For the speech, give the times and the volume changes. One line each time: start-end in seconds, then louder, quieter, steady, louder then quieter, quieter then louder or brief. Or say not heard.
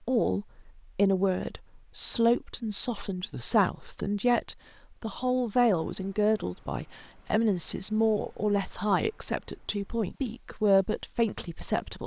0.1-12.0 steady.